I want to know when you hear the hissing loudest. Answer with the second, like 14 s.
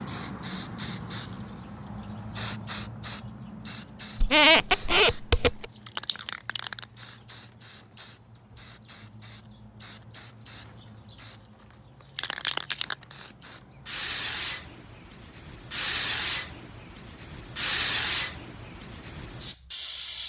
18 s.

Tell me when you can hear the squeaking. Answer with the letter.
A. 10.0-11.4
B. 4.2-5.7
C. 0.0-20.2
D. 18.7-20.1
B.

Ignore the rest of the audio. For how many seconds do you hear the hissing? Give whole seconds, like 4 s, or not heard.
20 s.